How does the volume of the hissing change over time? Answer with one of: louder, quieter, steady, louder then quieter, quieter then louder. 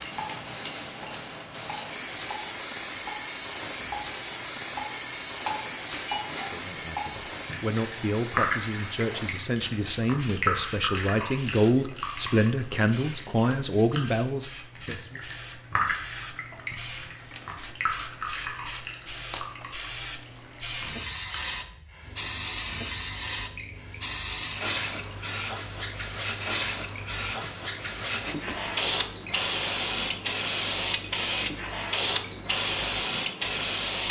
quieter then louder.